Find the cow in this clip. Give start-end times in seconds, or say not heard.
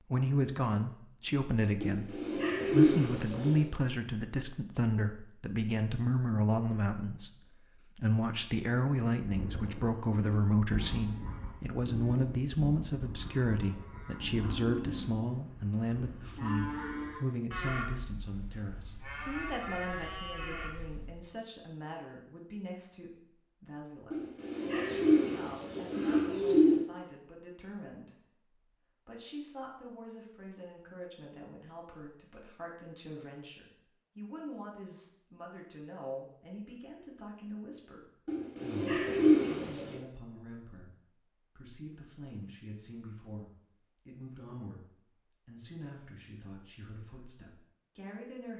9.2-21.2.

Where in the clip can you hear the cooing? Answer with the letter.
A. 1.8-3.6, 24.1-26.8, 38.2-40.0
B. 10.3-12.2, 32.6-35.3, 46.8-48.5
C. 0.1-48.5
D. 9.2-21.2
A.